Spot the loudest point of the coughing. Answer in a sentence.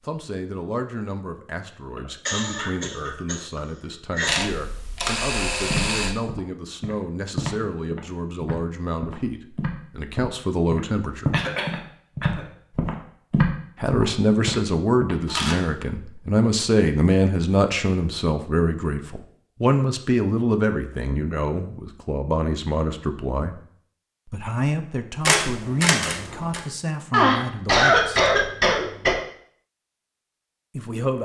The loudest moment of the coughing is at 28 seconds.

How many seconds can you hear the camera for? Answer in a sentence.
You can hear the camera for 4 seconds altogether.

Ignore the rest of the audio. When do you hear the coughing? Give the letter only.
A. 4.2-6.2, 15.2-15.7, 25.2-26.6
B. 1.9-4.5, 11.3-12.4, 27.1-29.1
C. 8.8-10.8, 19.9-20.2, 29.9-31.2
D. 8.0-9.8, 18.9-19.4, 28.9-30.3
B.